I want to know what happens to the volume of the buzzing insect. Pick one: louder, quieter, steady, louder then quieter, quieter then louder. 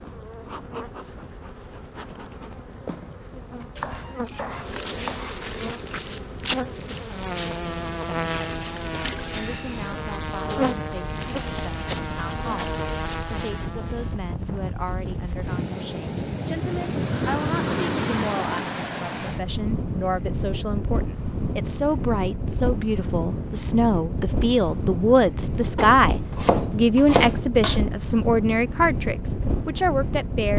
louder.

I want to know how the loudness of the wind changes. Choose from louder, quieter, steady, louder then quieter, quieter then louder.
louder.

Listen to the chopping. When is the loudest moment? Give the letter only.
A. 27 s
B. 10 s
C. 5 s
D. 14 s
A.